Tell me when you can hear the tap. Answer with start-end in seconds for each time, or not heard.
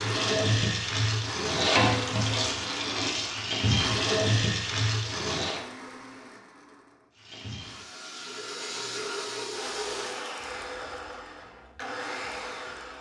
0.0-5.6, 7.2-10.2.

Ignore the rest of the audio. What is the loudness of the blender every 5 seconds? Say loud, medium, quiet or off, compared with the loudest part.
loud, medium, loud.